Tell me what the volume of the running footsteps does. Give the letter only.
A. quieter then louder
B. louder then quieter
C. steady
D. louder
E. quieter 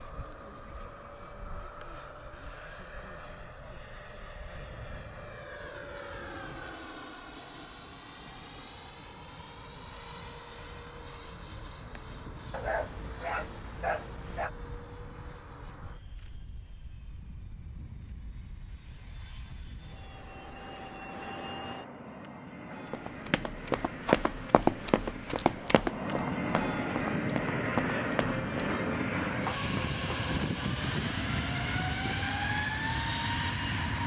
E.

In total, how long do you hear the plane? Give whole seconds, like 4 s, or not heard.
34 s.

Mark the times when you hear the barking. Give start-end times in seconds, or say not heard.
12.5-14.5.